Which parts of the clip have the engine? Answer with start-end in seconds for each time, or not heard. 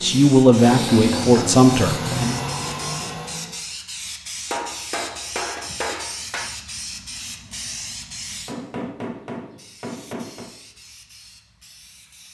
0.0-3.6.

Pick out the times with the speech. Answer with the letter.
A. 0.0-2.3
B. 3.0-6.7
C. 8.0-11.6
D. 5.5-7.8
A.